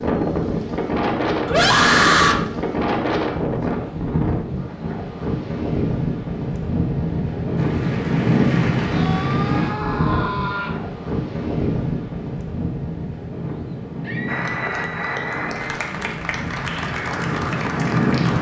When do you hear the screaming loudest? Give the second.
2 s.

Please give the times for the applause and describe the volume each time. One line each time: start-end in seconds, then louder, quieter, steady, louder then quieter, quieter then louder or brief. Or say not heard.
7.5-9.8 brief
14.2-18.3 steady.